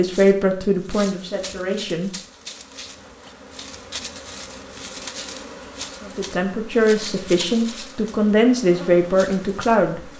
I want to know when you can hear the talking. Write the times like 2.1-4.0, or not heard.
0.0-2.1, 6.0-10.1.